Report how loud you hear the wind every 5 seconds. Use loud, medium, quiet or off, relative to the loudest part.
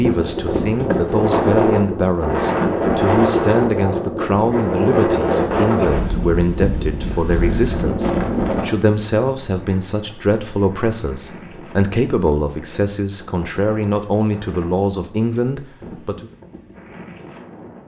loud, loud, quiet, quiet.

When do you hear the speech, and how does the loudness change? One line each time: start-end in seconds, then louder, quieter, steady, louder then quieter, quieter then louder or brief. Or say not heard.
0.0-16.2 steady.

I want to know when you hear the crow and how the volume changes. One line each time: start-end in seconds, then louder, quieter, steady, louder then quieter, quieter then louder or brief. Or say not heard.
not heard.